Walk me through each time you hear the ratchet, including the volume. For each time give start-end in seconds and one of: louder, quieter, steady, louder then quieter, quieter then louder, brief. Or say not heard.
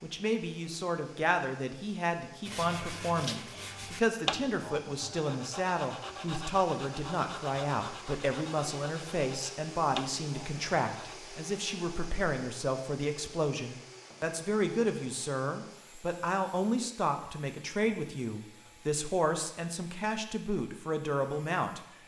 not heard.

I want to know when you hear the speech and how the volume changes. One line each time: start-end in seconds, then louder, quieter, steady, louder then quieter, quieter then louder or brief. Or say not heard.
0.0-21.8 steady.